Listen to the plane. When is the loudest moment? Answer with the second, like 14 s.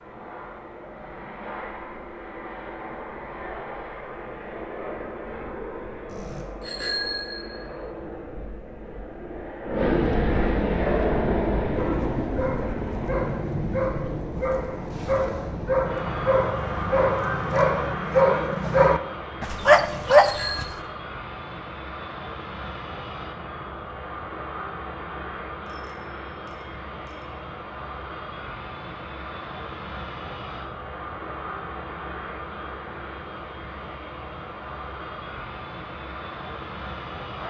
10 s.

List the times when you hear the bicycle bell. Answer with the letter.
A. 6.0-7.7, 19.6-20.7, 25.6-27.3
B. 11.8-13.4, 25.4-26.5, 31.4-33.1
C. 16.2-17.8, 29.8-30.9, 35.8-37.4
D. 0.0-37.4
A.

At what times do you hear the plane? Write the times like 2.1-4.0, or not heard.
0.0-37.4.